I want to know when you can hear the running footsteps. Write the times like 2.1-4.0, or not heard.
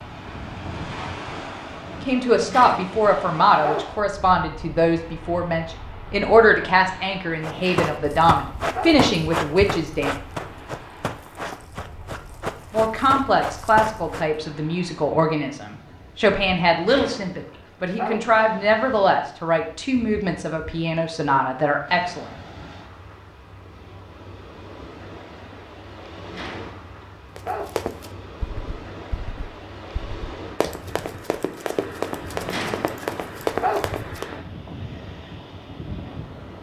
7.4-14.2, 27.4-34.4.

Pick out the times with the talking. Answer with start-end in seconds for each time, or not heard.
2.0-10.1, 12.7-22.2.